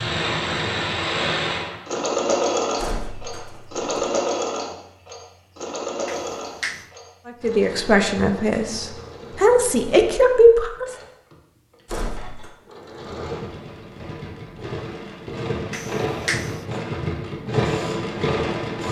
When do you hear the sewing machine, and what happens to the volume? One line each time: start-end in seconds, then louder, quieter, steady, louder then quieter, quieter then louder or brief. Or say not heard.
0.0-18.8 quieter then louder.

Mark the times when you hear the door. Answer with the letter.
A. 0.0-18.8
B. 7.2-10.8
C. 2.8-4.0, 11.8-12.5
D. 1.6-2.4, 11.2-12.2
C.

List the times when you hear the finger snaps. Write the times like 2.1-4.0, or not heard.
6.0-6.9, 15.7-16.6.